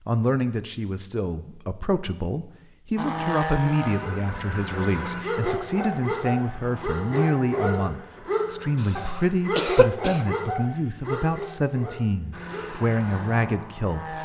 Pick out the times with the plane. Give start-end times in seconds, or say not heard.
3.0-9.3, 12.3-14.1.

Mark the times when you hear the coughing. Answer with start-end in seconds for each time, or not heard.
9.6-10.2.